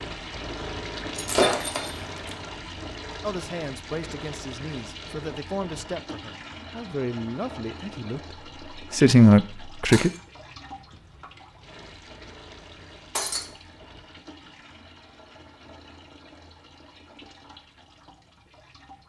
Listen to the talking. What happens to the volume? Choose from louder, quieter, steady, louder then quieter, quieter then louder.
louder.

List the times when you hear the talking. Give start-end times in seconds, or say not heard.
3.2-10.1.